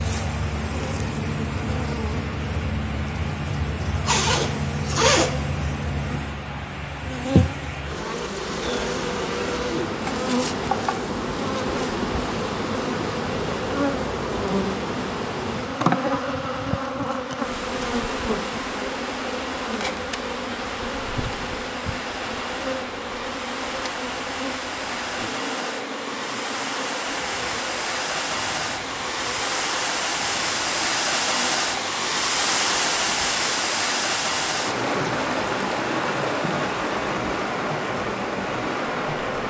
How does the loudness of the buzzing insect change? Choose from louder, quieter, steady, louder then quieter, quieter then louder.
quieter.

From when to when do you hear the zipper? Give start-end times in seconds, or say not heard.
4.0-5.4.